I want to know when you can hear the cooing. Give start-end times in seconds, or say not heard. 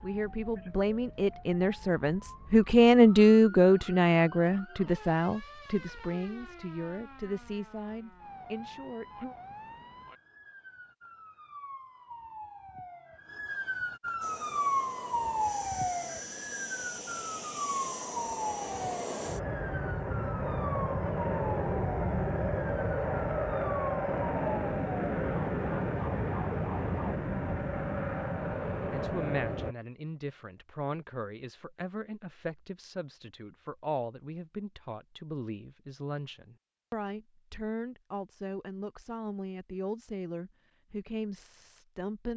not heard.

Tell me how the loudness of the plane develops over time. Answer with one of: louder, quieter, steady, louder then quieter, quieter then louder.
louder.